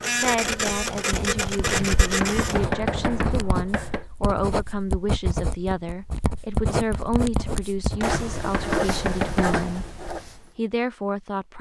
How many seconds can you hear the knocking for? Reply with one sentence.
You can hear the knocking for 4 seconds altogether.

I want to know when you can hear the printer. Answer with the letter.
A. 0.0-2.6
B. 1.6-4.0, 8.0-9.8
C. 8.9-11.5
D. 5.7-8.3
A.